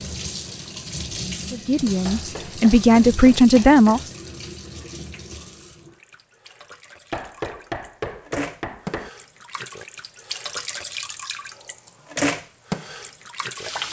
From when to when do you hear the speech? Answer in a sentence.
The speech can be heard from 1.5 to 4.1 s.